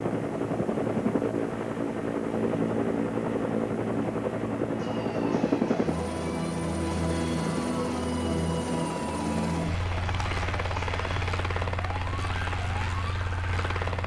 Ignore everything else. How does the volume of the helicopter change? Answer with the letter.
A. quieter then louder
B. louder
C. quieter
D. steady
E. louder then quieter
C.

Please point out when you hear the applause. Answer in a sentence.
The applause can't be heard in this clip.